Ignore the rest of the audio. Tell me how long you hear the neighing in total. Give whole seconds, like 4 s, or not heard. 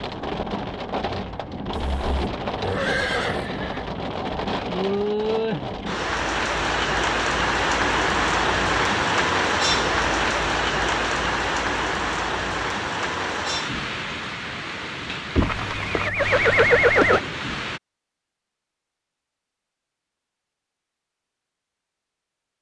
4 s.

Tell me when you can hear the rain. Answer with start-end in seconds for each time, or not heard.
0.0-17.8.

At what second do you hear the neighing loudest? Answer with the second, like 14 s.
17 s.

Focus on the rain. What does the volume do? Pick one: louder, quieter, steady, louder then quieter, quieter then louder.
louder then quieter.